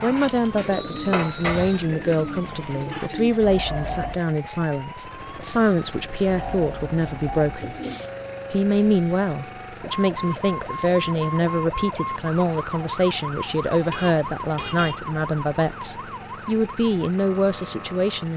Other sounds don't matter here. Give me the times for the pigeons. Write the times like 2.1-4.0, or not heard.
0.0-4.2, 6.2-8.1.